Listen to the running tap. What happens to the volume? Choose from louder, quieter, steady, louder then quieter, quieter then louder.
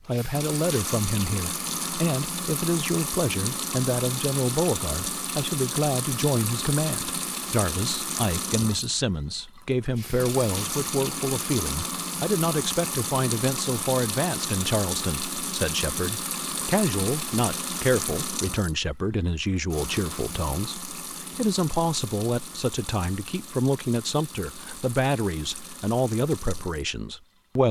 quieter.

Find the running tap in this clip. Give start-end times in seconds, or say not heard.
0.0-27.6.